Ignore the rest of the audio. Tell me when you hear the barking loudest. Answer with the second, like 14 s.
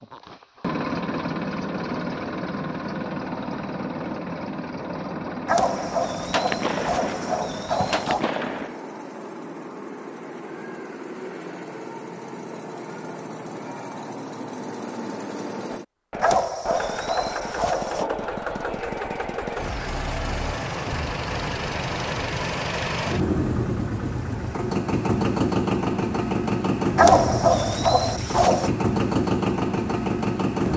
27 s.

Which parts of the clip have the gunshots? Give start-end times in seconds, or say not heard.
5.8-8.8.